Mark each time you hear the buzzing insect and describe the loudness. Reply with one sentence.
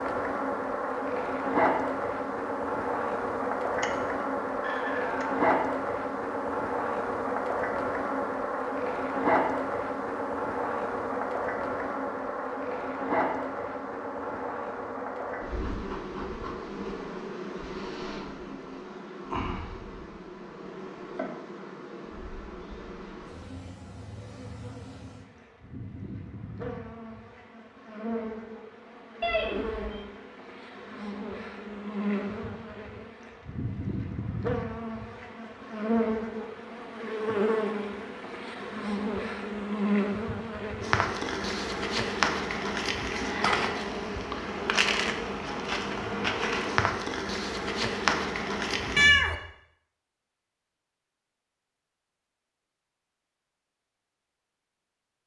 The buzzing insect can be heard from 0.0 to 49.1 s, getting quieter then louder.